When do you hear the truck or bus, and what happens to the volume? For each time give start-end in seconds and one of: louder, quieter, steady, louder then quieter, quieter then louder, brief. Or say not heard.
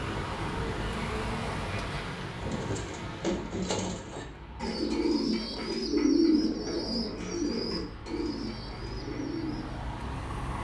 0.0-10.6 quieter then louder.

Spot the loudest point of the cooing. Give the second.
6 s.